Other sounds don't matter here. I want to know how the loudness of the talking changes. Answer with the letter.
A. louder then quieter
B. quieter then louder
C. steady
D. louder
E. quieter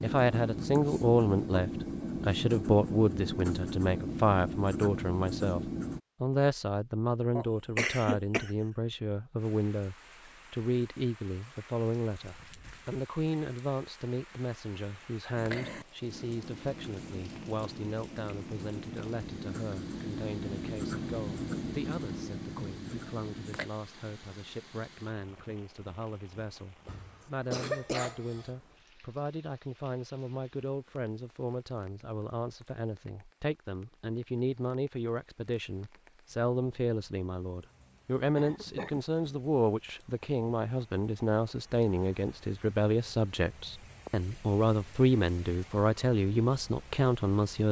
B.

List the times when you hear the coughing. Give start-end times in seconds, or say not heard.
7.3-8.5, 26.9-28.5, 38.4-39.0.